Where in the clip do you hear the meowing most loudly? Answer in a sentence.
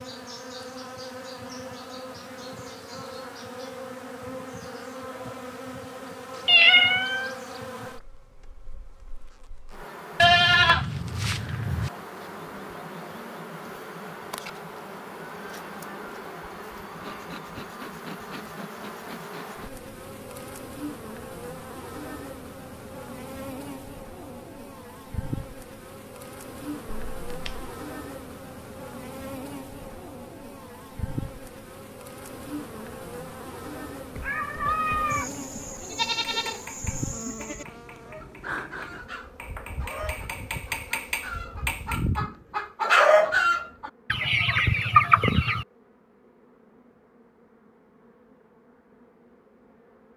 The loudest moment of the meowing is at 7 seconds.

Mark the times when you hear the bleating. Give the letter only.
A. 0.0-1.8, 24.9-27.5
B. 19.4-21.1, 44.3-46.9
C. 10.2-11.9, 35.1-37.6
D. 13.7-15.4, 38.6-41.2
C.